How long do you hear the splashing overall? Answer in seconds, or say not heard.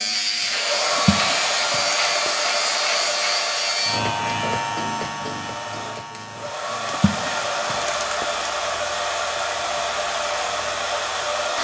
3 s.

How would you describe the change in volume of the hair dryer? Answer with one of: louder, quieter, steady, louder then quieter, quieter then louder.
quieter then louder.